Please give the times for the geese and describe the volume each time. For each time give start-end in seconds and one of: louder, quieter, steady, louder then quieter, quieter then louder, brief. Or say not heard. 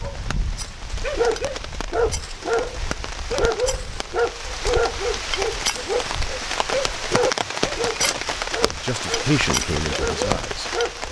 not heard.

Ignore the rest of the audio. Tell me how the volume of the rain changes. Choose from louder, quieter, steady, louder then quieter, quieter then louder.
louder.